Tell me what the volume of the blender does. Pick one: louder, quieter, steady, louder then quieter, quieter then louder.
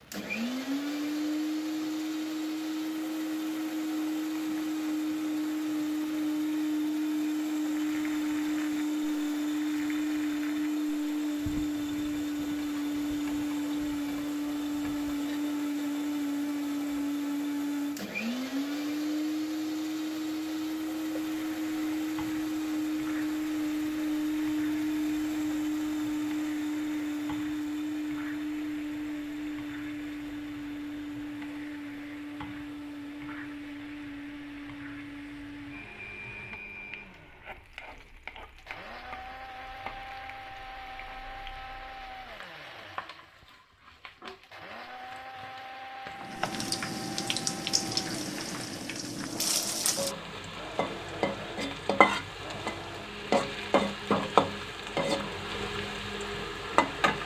quieter.